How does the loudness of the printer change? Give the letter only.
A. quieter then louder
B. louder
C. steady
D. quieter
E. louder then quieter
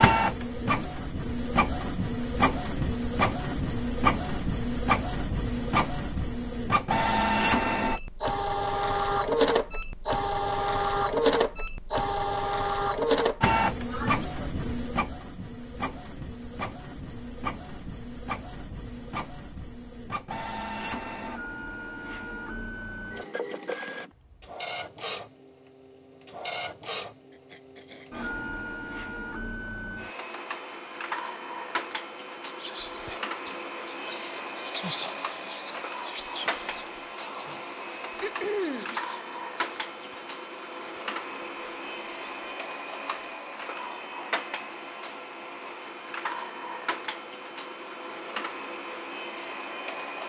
D.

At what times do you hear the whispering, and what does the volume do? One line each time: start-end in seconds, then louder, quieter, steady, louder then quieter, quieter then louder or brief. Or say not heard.
32.4-44.2 quieter.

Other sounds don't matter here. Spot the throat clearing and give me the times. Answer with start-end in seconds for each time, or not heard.
13.8-14.2, 27.3-28.4, 38.2-39.0.